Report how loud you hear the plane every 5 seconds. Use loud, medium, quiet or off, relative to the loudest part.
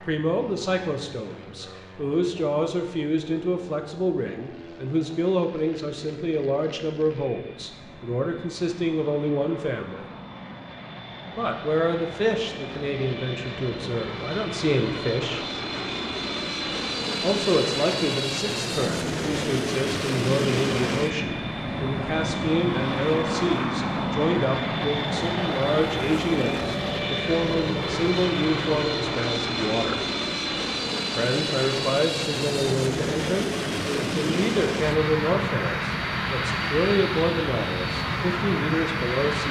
quiet, quiet, medium, loud, loud, loud, loud, loud.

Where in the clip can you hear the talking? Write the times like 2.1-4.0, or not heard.
0.0-10.1, 11.3-15.4, 17.2-30.0, 31.1-39.4.